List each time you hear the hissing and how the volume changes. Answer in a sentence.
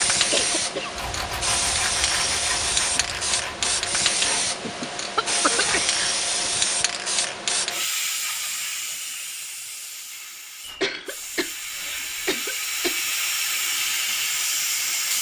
The hissing can be heard from 0.0 to 15.1 s, getting quieter then louder.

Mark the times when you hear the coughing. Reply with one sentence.
You can hear the coughing from 0.3 to 1.4 s, from 5.2 to 6.0 s and from 10.6 to 13.1 s.